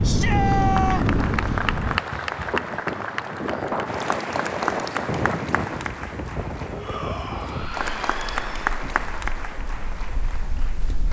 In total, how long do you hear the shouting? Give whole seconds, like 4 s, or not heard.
3 s.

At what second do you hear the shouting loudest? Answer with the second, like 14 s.
1 s.